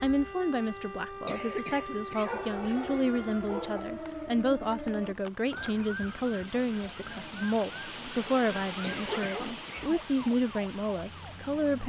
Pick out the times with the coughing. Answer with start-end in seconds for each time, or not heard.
1.2-2.5, 8.8-10.3.